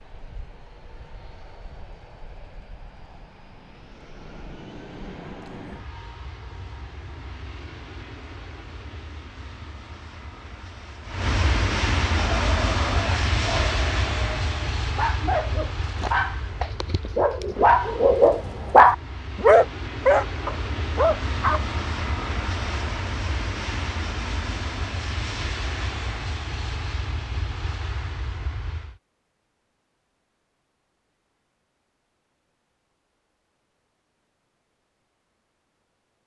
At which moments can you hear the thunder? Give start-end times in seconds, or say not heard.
not heard.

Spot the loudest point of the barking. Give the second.
19 s.